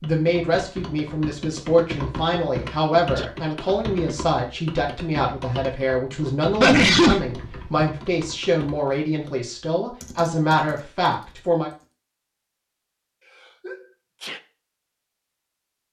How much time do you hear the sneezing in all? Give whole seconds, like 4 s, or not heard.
2 s.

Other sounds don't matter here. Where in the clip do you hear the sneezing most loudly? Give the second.
7 s.